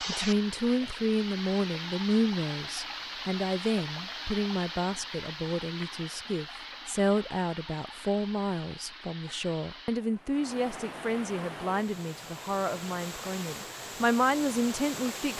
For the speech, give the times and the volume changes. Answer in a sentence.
You can hear the speech from 0.1 to 15.3 s, at a steady volume.